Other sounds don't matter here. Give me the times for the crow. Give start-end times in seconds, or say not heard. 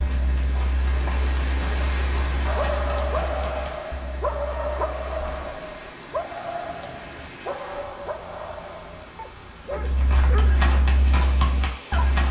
not heard.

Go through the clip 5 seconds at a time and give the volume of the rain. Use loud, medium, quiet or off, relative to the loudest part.
loud, medium, medium.